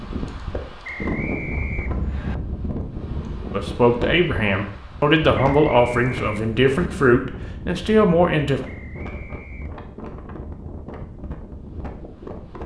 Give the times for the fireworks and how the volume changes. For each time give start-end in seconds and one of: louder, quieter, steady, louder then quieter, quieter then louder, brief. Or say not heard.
not heard.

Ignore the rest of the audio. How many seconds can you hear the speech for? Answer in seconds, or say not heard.
5 s.